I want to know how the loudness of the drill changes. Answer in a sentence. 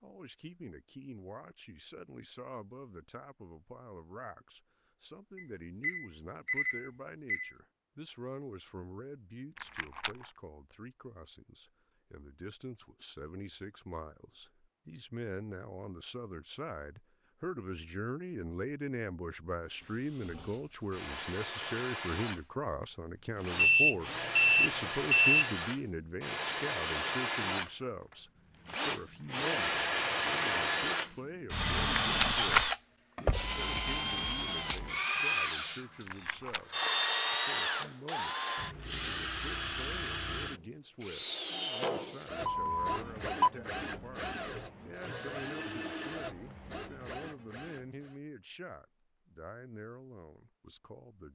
The volume of the drill goes up, then down.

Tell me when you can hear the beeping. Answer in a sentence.
You can hear the beeping from 5.3 to 7.5 s, from 23.6 to 25.5 s and from 42.5 to 43.5 s.